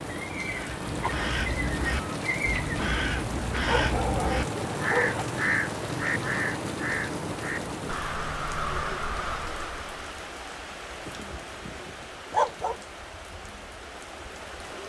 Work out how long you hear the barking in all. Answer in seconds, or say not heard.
3 s.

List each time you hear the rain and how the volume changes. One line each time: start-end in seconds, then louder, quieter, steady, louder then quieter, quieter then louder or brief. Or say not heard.
0.0-14.8 quieter.